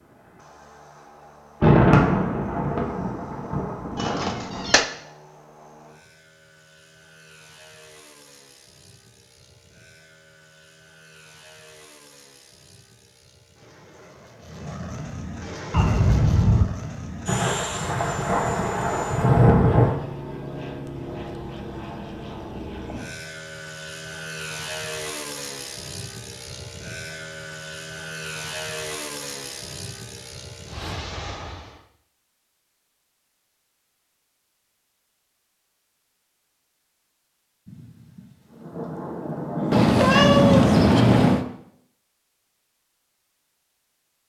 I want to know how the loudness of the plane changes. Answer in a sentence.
The volume of the plane goes up.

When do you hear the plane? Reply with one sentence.
The plane can be heard from 0.0 to 31.9 s.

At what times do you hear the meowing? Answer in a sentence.
The meowing can be heard from 4.0 to 4.8 s, from 15.7 to 16.7 s and from 39.7 to 41.5 s.